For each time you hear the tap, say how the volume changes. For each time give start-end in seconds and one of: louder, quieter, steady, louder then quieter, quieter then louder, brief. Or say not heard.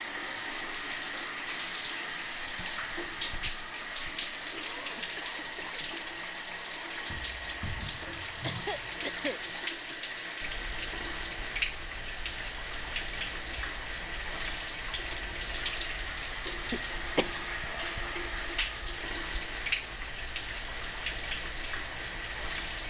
0.0-22.8 steady.